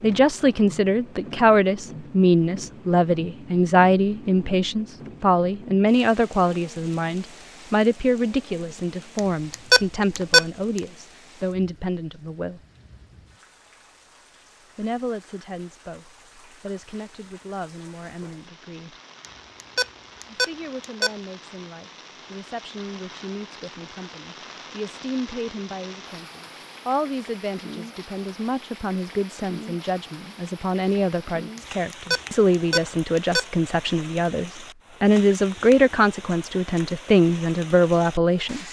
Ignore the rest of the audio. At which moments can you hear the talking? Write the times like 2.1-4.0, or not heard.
0.0-12.6, 14.8-18.9, 20.2-38.6.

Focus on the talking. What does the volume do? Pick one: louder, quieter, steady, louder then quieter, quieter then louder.
quieter then louder.